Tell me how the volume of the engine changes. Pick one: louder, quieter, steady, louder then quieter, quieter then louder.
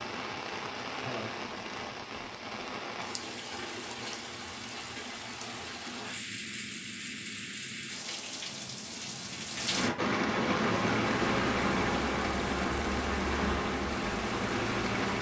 steady.